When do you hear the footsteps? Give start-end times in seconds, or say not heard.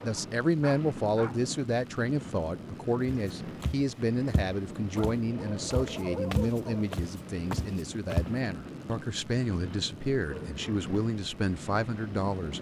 3.0-8.3.